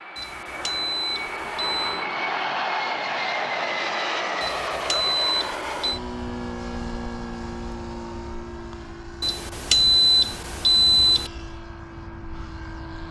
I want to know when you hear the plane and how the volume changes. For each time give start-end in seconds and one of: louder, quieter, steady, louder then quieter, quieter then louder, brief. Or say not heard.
0.0-13.0 quieter.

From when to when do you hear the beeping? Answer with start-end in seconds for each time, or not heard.
0.1-2.0, 4.4-6.0, 9.2-11.3.